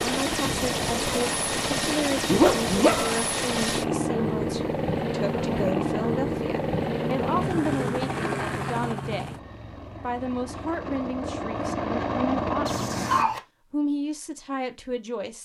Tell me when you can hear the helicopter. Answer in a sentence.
The helicopter can be heard from 0.0 to 13.3 s.